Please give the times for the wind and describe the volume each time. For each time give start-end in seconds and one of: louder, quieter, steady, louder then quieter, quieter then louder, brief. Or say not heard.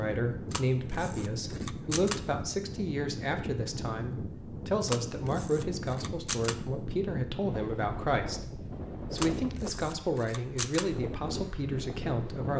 0.0-12.5 steady.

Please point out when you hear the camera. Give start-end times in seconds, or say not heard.
0.5-2.2, 4.8-6.5, 9.2-10.8.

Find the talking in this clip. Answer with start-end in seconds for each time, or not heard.
0.0-12.5.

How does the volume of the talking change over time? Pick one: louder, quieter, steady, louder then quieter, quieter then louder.
steady.